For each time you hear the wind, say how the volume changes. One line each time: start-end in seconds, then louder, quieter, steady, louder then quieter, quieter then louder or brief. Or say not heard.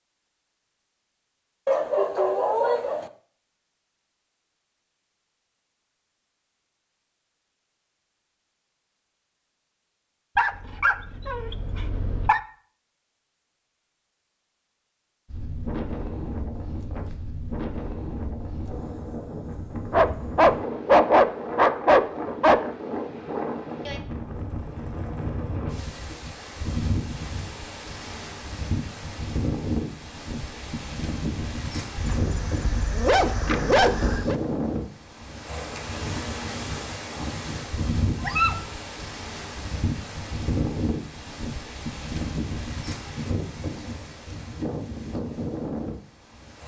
15.3-46.6 steady.